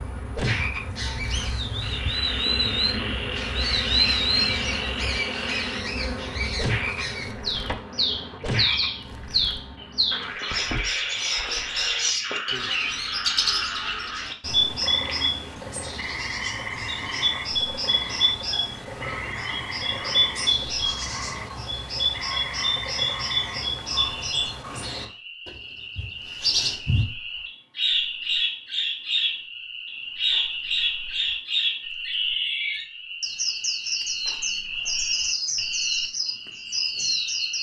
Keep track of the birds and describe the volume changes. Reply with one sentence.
The volume of the birds stays about the same.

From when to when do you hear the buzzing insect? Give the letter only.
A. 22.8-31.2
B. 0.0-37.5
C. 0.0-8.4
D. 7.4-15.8
C.